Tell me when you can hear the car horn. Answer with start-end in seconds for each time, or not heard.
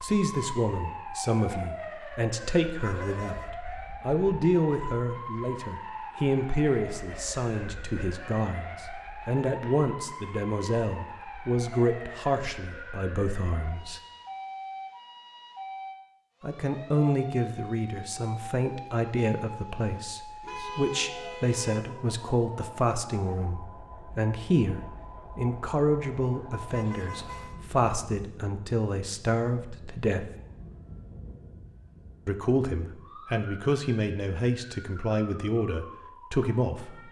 2.8-3.5, 20.4-21.9, 26.7-27.6.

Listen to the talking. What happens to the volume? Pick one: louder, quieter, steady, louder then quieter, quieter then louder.
steady.